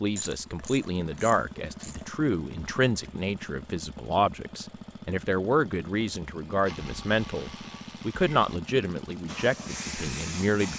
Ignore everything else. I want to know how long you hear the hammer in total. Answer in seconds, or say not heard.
not heard.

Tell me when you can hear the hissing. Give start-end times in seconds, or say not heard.
9.2-10.7.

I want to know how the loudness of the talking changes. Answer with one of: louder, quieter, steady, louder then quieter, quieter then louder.
steady.